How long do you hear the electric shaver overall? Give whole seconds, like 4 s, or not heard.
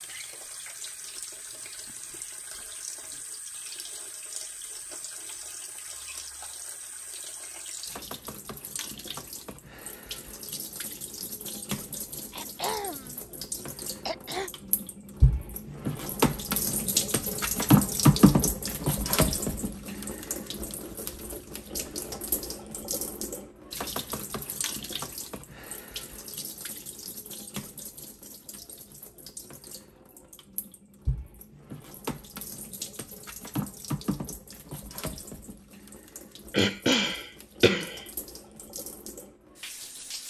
not heard.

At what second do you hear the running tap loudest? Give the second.
18 s.